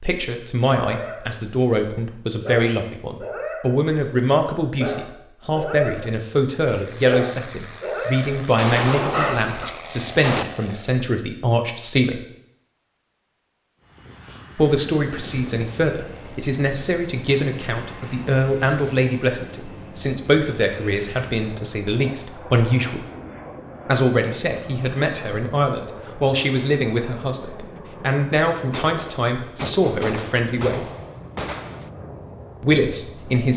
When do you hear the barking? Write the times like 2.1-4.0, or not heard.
0.8-9.7.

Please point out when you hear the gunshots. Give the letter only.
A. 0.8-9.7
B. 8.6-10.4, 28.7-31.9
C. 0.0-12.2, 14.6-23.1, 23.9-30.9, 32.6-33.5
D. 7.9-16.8
B.